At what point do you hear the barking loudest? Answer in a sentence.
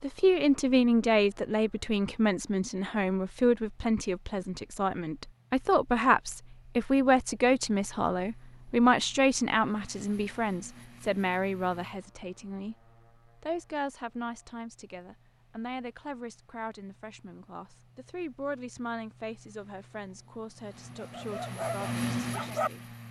The loudest moment of the barking is at 23 seconds.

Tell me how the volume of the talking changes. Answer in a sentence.
The volume of the talking goes down.